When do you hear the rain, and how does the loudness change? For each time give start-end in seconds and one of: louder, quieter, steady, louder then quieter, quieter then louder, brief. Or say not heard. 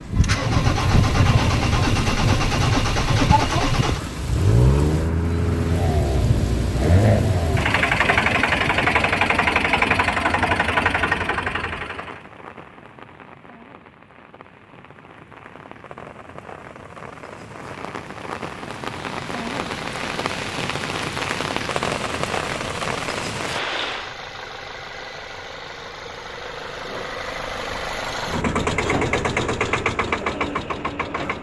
0.0-24.1 quieter then louder.